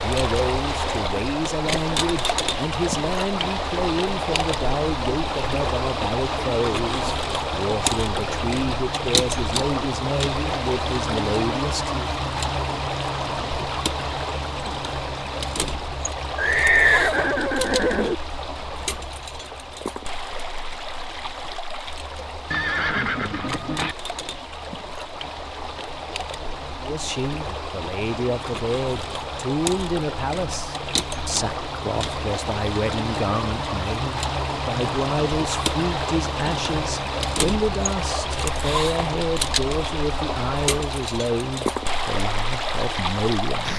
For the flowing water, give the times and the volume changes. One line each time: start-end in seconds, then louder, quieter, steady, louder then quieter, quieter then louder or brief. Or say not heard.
0.0-43.7 quieter then louder.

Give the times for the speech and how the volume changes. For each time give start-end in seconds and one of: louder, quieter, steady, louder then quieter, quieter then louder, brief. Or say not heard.
0.0-12.1 steady
26.8-43.7 steady.